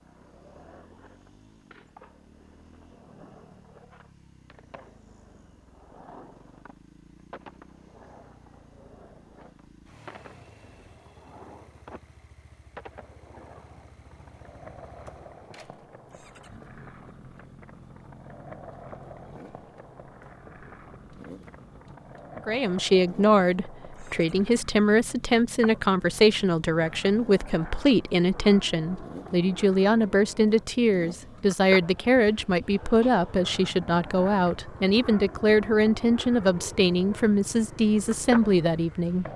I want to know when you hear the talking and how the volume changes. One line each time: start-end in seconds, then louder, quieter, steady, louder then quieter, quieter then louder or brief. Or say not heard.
22.4-39.2 steady.